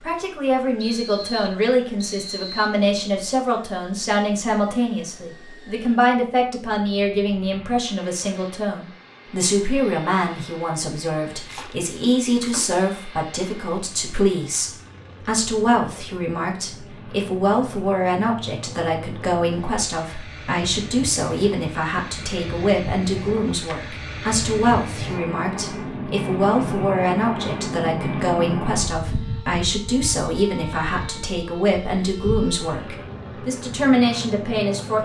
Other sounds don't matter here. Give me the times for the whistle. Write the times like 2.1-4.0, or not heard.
0.8-2.8.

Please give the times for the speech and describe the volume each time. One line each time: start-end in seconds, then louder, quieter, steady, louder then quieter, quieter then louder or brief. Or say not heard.
0.0-35.0 steady.